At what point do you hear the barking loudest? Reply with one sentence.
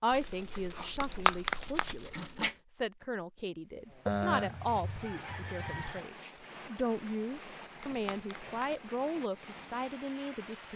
The volume of the barking peaks at 1 second.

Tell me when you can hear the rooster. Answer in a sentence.
You can hear the rooster from 4.0 to 6.0 s.